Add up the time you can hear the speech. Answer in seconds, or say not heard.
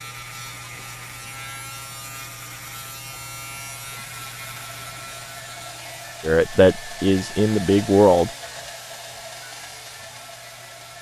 2 s.